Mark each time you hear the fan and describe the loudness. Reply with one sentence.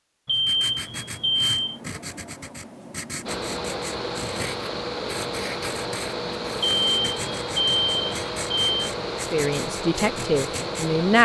You can hear the fan from 3.2 to 11.2 s, at a steady volume.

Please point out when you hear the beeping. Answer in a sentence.
The beeping can be heard from 0.2 to 1.8 s and from 6.6 to 8.9 s.